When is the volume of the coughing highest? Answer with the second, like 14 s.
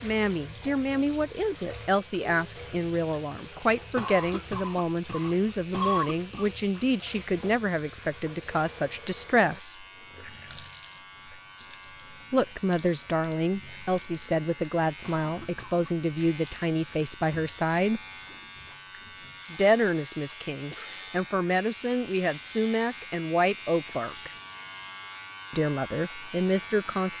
6 s.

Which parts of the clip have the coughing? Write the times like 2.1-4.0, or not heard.
4.0-6.5, 15.0-15.9, 20.7-21.1.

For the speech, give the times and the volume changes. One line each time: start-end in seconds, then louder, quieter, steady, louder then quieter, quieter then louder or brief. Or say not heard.
0.0-9.8 steady
12.3-18.0 steady
19.5-24.3 louder
25.5-27.1 brief.